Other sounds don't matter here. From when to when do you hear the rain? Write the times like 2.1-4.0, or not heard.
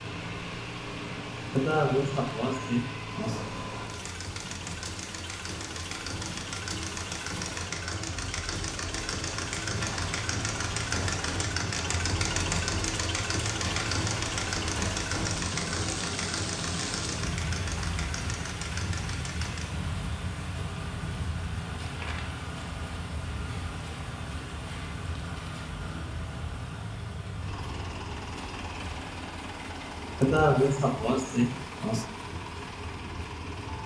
0.0-33.8.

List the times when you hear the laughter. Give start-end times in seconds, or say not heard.
1.6-3.5, 30.2-32.0.